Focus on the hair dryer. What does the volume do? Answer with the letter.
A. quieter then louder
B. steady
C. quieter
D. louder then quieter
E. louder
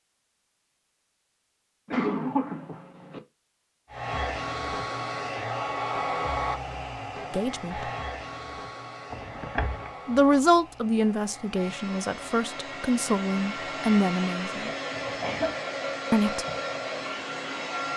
A.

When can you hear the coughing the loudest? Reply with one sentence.
The volume of the coughing peaks at 2 seconds.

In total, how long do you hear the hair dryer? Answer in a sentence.
You can hear the hair dryer for 14 seconds altogether.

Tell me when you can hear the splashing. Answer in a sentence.
You can't hear the splashing here.